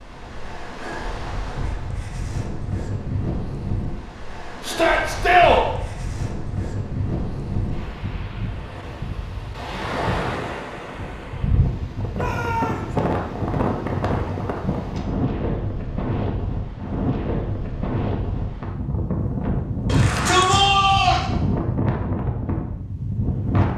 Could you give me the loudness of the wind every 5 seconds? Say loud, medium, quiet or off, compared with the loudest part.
medium, medium, loud, loud, loud.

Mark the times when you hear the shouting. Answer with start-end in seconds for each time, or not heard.
4.6-5.7, 12.1-12.9, 19.9-21.2.